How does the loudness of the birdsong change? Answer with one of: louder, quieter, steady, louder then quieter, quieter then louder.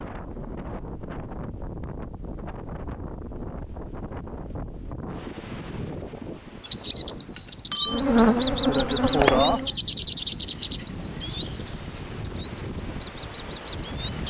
quieter.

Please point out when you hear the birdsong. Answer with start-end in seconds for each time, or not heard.
6.6-14.2.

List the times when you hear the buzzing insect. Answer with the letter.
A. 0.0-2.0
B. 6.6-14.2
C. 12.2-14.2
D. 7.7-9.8
D.